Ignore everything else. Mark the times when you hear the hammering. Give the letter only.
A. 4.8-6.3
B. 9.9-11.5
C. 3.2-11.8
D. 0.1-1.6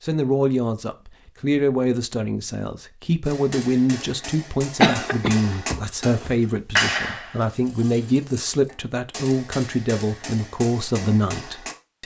C.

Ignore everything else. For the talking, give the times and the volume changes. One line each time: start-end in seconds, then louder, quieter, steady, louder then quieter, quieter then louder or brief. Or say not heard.
0.0-12.0 steady.